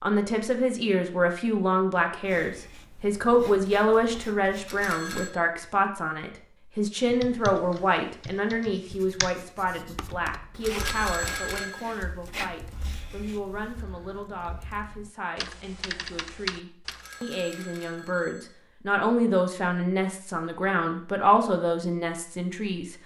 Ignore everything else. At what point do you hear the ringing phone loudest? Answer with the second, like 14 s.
11 s.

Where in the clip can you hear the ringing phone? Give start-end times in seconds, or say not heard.
4.7-5.3, 10.6-11.8, 16.9-18.4.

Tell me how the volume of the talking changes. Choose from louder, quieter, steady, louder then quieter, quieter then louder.
quieter then louder.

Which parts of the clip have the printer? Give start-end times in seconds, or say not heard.
not heard.